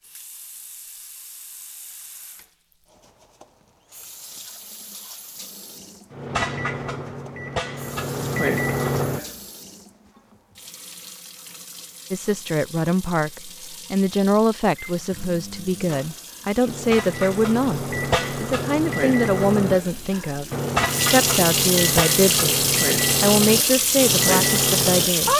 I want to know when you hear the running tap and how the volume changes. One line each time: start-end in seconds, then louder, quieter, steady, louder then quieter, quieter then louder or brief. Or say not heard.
0.0-25.3 louder.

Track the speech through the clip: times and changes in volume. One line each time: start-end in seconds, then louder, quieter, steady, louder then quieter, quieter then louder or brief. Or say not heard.
12.1-25.3 steady.